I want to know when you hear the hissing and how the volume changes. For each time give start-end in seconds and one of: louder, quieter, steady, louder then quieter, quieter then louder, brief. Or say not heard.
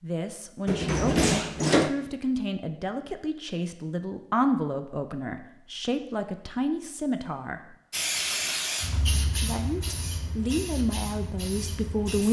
7.9-12.2 quieter.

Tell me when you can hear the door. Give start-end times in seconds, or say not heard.
0.7-1.9.